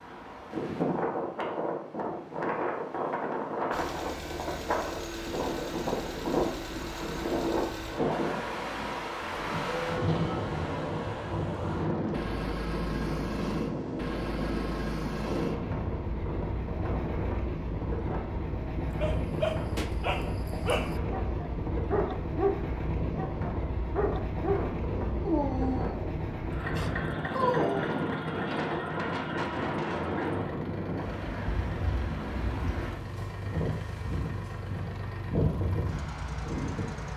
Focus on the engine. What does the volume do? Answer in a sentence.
The volume of the engine stays about the same.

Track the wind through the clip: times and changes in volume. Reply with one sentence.
The wind can be heard from 0.0 to 37.1 s, at a steady volume.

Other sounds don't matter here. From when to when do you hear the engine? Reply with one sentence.
You can hear the engine from 3.7 to 37.1 s.